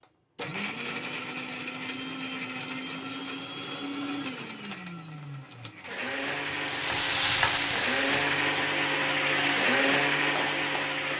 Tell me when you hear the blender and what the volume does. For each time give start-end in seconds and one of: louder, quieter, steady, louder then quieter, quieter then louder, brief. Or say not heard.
0.0-11.1 louder.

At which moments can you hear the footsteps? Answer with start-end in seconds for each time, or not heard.
not heard.